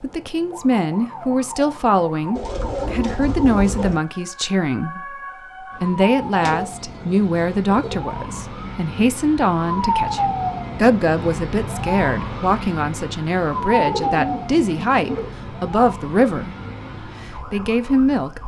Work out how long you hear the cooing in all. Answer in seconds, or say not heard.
5 s.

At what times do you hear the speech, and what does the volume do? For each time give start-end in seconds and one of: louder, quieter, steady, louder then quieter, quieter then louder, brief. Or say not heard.
0.0-18.4 steady.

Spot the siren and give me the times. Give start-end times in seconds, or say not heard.
0.0-18.4.